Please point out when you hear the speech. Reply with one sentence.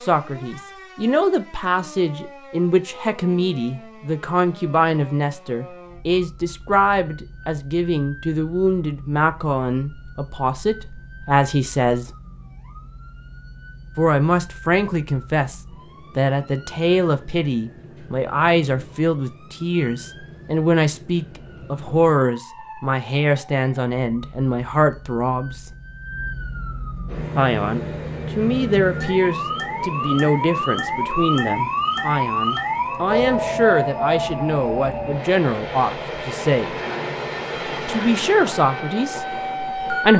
The speech can be heard from 0.0 to 12.1 s, from 13.9 to 25.6 s, from 27.4 to 36.8 s and from 37.9 to 40.1 s.